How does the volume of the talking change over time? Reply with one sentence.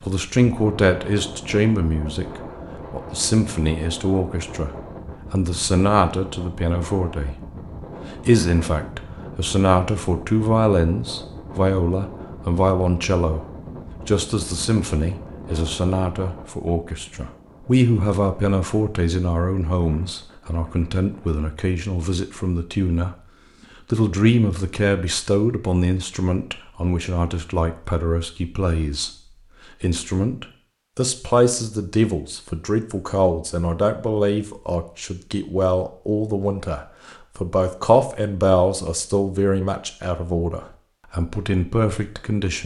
The loudness of the talking stays about the same.